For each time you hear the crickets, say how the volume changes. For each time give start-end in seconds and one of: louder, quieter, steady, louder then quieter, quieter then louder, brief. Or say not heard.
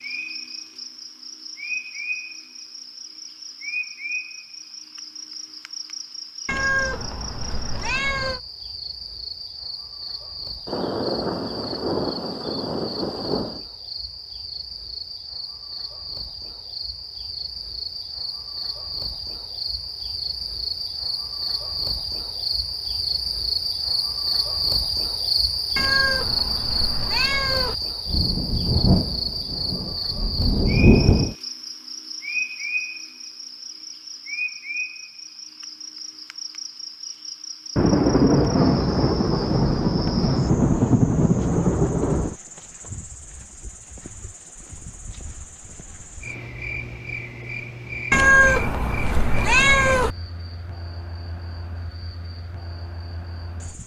0.0-53.8 louder then quieter.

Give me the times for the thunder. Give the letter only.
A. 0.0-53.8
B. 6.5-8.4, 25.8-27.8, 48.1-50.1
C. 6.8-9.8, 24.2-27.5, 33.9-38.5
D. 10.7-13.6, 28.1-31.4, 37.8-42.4
D.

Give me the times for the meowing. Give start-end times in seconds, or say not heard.
6.5-8.4, 25.8-27.8, 48.1-50.1.